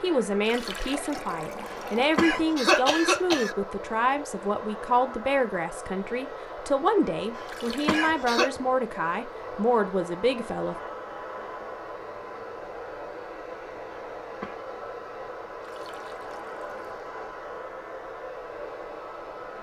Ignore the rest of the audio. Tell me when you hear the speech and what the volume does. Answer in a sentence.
You can hear the speech from 0.0 to 10.8 s, at a steady volume.